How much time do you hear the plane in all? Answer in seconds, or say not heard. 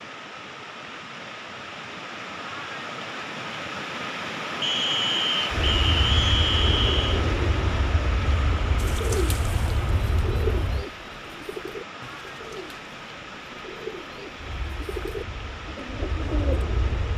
8 s.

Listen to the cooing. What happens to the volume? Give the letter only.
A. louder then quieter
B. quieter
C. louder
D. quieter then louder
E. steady
D.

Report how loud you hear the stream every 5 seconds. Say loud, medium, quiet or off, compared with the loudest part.
loud, loud, medium, medium.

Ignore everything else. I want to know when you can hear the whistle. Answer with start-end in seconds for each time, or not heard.
4.6-7.2.